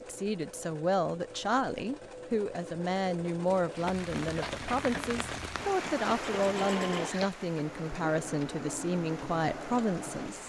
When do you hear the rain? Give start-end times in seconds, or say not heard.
3.7-10.4.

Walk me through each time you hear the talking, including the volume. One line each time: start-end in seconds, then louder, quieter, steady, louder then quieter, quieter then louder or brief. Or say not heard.
0.0-10.4 steady.